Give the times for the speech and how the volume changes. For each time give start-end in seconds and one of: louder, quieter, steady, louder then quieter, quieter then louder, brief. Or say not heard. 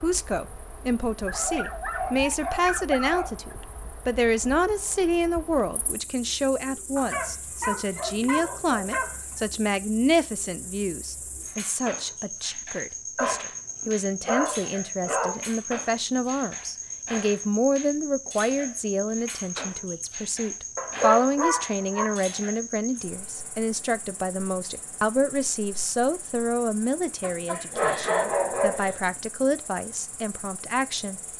0.0-31.2 steady.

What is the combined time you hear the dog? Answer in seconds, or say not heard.
10 s.